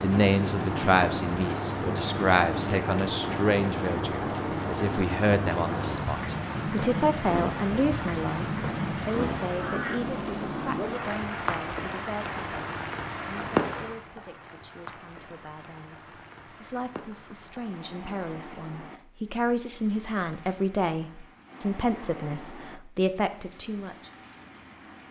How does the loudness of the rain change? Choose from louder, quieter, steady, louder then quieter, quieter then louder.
quieter.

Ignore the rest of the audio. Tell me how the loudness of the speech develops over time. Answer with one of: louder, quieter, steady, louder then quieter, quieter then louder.
quieter then louder.